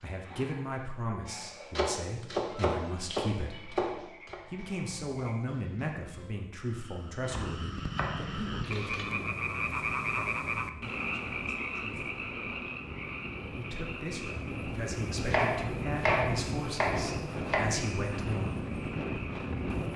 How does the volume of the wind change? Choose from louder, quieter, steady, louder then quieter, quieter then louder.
louder.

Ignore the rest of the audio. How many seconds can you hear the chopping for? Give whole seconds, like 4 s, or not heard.
7 s.